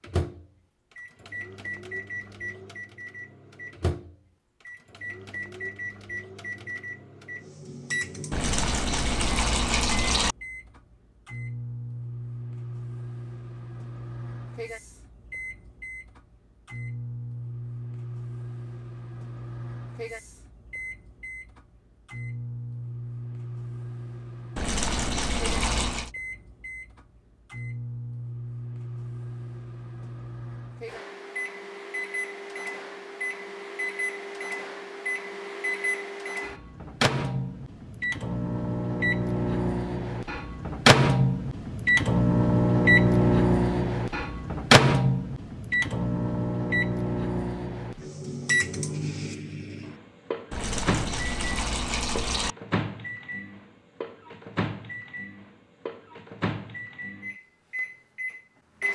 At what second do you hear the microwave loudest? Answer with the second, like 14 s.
43 s.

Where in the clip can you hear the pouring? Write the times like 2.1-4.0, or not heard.
8.3-10.3, 24.6-26.1, 50.5-52.5.